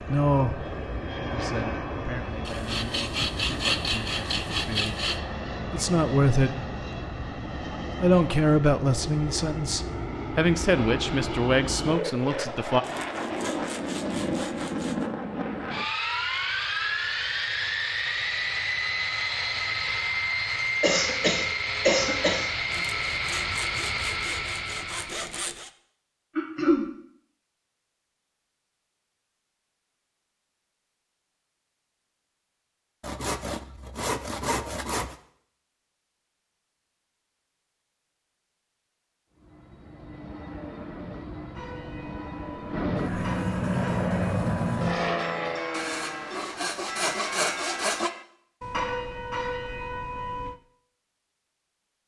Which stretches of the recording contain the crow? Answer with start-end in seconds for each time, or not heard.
not heard.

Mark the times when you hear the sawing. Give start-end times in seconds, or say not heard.
2.5-5.2, 12.8-15.1, 22.7-25.7, 33.0-35.1, 45.7-48.1.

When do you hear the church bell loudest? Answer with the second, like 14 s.
49 s.